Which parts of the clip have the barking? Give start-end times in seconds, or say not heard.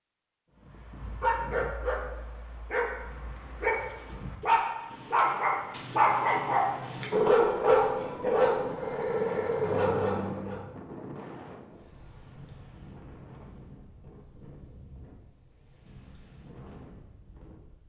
0.6-10.7.